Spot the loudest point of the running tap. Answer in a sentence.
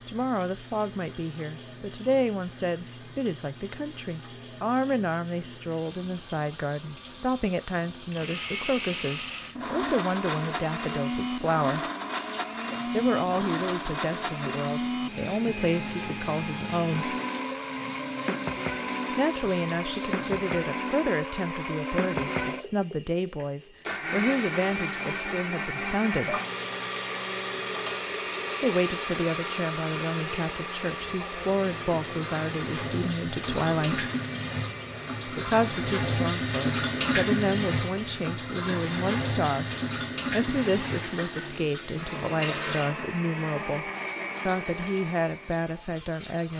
The loudest moment of the running tap is at 37 seconds.